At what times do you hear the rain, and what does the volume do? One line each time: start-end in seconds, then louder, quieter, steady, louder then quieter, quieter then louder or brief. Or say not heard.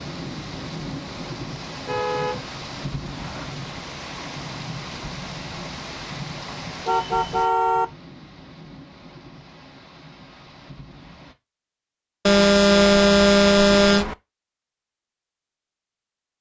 0.0-11.3 quieter.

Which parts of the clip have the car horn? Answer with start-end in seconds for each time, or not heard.
1.8-3.5, 6.7-7.8, 12.2-14.2.